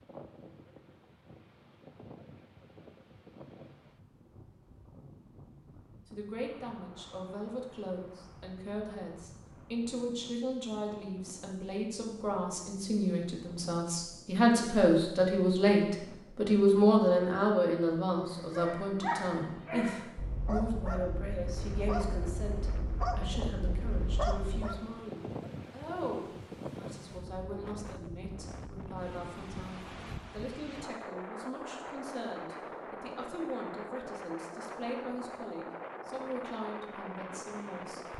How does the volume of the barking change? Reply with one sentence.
The loudness of the barking stays about the same.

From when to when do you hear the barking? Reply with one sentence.
You can hear the barking from 18.2 to 24.9 s.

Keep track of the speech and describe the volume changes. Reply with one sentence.
The volume of the speech goes up, then down.